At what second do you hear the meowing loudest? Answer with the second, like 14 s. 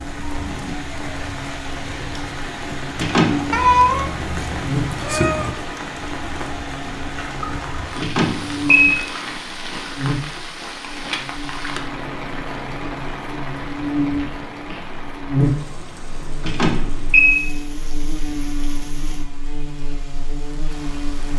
4 s.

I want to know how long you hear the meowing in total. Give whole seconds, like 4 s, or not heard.
3 s.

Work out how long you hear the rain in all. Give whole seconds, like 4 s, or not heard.
21 s.